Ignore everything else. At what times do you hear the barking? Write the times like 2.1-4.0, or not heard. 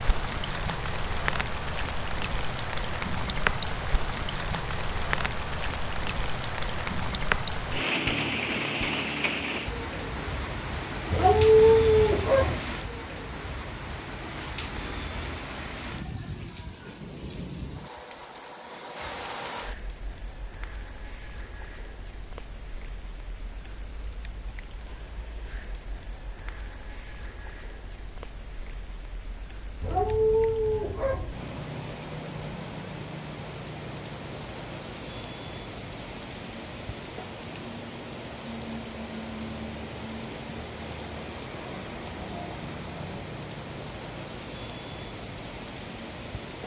11.1-12.6, 29.8-31.4.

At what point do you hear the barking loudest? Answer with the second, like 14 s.
12 s.